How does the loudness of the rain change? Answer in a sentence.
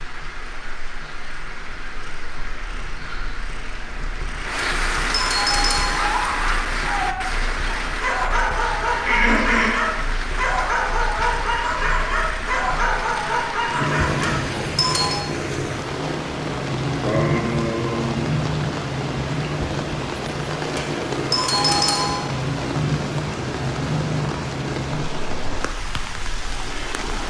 The volume of the rain stays about the same.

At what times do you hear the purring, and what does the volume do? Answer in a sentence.
The purring can be heard from 0.0 to 27.0 s, getting louder.